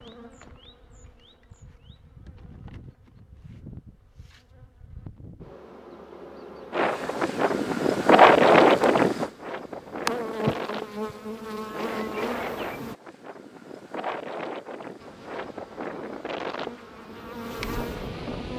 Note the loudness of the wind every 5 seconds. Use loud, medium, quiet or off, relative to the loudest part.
off, loud, quiet, quiet.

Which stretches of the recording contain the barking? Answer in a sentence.
The barking can't be heard in this clip.